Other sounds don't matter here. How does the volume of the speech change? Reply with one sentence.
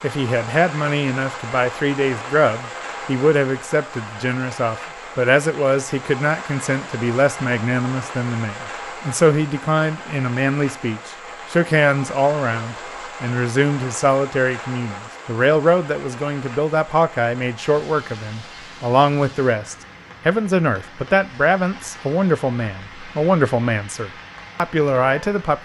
The volume of the speech stays about the same.